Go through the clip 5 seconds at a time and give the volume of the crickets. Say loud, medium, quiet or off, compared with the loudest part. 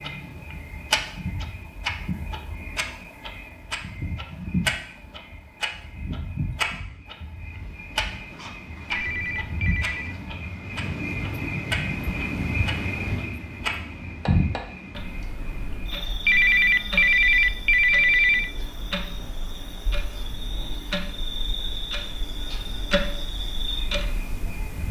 medium, medium, loud, medium, medium.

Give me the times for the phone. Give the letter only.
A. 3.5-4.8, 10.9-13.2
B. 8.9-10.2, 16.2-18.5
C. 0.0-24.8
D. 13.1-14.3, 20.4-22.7
B.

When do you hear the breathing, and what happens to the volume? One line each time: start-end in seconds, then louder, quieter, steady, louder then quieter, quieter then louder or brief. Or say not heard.
not heard.